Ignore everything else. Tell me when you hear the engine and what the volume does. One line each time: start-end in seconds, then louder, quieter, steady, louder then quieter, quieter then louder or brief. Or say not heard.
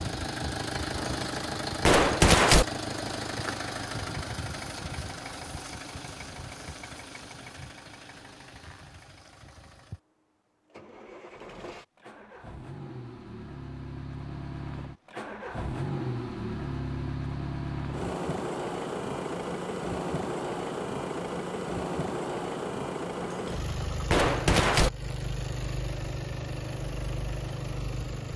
0.0-28.3 quieter then louder.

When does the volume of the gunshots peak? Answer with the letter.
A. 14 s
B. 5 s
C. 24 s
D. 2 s
D.